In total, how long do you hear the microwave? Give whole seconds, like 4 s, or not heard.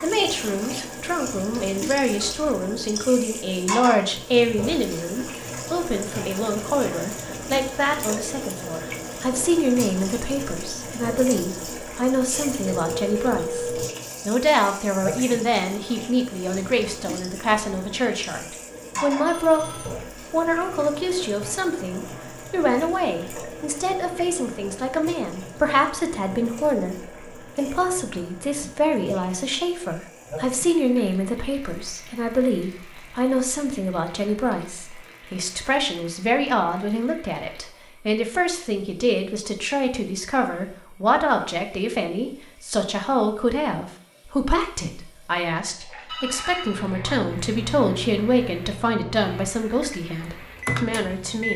5 s.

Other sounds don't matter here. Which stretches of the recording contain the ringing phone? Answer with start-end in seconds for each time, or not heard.
12.7-13.9, 19.2-19.9, 46.0-46.9.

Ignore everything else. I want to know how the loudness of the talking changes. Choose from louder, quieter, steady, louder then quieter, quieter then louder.
steady.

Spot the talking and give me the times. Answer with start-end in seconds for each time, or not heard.
0.0-51.5.